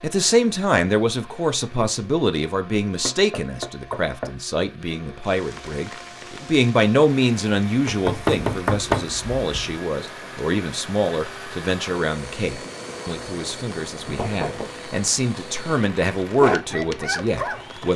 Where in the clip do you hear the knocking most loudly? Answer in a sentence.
The volume of the knocking peaks at 9 seconds.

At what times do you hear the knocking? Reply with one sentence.
You can hear the knocking from 3.0 to 4.3 s, from 7.8 to 9.8 s and from 14.1 to 14.7 s.